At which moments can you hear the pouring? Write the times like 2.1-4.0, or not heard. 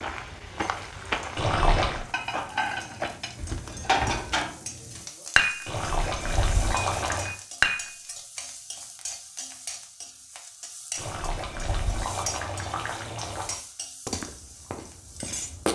1.4-2.0, 5.7-7.3, 10.9-13.6.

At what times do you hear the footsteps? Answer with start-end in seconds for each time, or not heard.
0.0-4.4, 14.1-15.7.